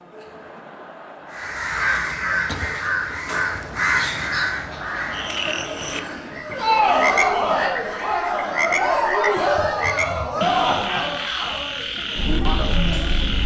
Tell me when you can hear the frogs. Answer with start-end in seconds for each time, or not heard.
5.1-13.4.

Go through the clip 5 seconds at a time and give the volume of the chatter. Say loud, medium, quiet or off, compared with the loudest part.
quiet, loud, loud.